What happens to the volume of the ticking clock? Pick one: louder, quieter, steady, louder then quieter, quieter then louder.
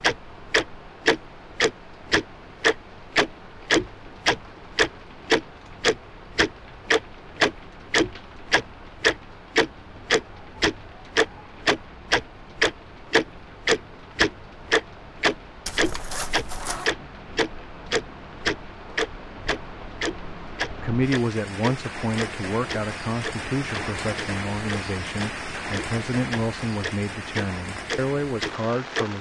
quieter.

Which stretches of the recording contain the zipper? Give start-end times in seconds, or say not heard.
15.7-16.9.